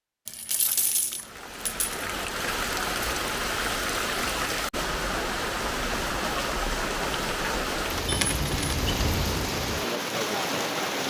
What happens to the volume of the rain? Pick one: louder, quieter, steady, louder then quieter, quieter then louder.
steady.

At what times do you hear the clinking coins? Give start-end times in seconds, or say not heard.
0.2-2.0, 8.1-9.4.